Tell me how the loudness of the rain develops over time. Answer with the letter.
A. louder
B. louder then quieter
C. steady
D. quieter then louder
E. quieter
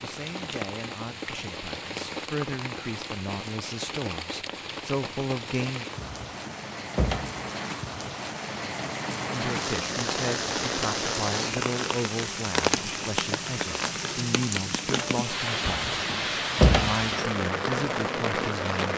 A.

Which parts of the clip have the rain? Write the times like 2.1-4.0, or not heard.
0.0-18.9.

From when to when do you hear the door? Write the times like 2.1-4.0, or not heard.
5.9-7.4, 15.6-17.1.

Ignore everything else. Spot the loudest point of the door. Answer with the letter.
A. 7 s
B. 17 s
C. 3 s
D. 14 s
B.